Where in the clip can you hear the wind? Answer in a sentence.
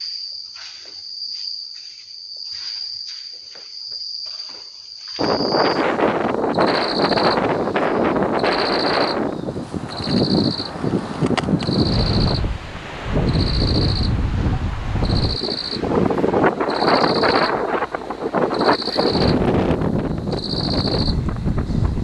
You can hear the wind from 5.2 to 21.9 s.